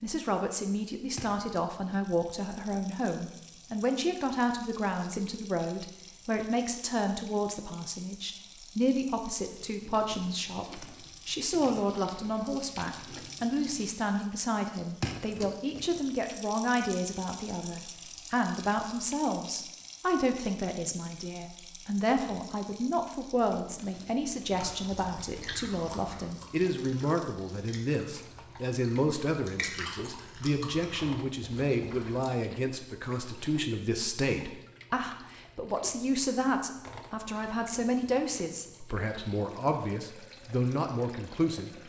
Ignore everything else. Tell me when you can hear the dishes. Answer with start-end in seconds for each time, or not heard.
not heard.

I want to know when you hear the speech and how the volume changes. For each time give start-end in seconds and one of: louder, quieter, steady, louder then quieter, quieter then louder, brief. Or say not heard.
0.0-41.7 steady.